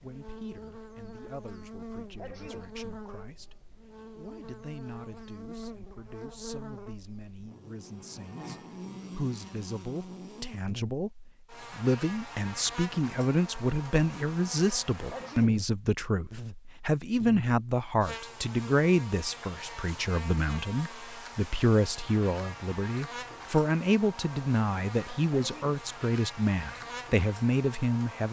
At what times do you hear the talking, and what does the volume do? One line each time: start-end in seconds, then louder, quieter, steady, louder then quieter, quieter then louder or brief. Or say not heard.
0.0-28.2 louder.